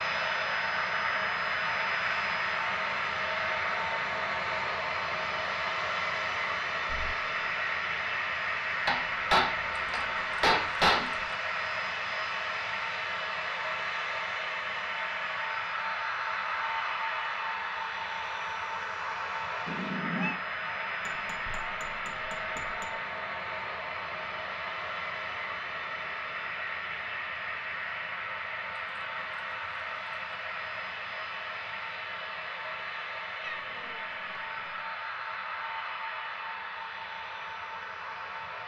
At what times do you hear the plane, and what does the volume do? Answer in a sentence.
You can hear the plane from 0.0 to 38.6 s, getting quieter.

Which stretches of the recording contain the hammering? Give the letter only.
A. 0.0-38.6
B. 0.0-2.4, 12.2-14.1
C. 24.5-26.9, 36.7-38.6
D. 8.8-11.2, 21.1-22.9
D.